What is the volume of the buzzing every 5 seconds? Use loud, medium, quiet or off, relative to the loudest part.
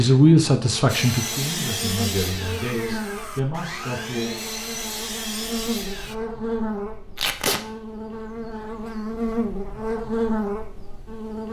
medium, loud, loud.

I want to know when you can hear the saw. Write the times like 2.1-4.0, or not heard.
0.8-6.2.